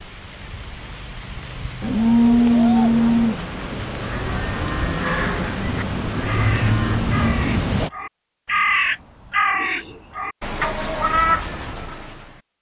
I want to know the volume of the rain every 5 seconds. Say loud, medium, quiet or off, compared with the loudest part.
medium, loud, off.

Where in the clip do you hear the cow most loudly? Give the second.
2 s.